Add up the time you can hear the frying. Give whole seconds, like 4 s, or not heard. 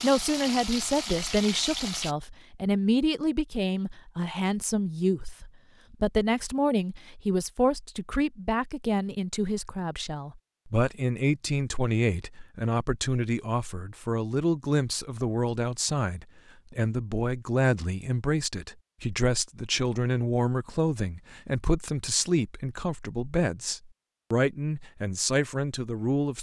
2 s.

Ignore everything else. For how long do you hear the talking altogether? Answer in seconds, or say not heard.
26 s.